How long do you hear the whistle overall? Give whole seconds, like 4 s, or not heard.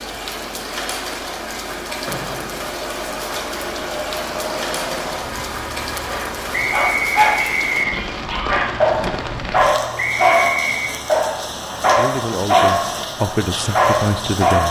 3 s.